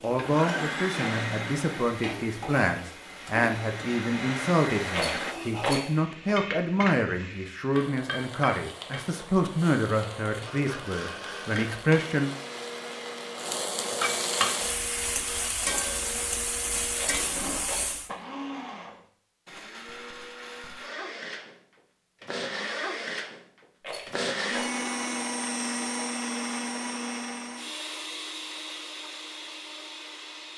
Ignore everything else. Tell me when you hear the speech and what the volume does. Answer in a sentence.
You can hear the speech from 0.0 to 12.3 s, at a steady volume.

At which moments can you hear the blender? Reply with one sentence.
You can hear the blender from 0.0 to 5.3 s and from 10.4 to 30.5 s.